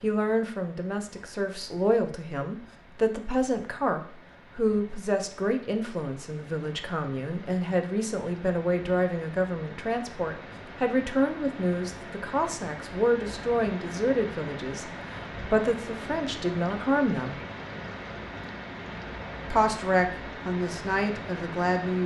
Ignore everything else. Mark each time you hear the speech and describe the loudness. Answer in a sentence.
The speech can be heard from 0.0 to 17.4 s, at a steady volume; and briefly from 19.5 to 22.0 s.